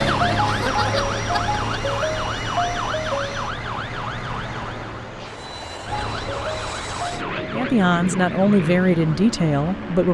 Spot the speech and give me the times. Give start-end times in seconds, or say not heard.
7.5-10.0.